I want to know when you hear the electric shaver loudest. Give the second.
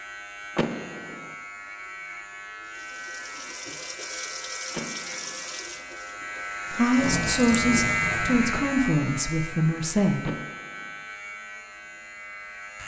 8 s.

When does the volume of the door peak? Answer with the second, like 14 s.
1 s.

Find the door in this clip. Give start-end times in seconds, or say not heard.
0.6-1.4, 4.7-5.5, 10.2-11.0.